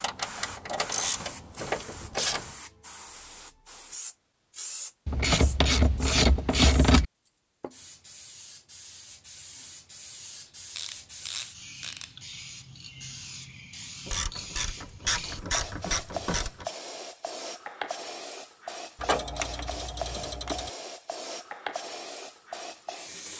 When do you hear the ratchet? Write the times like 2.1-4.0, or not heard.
0.0-2.5, 5.0-7.0, 10.8-12.2, 14.1-16.6, 18.9-20.7.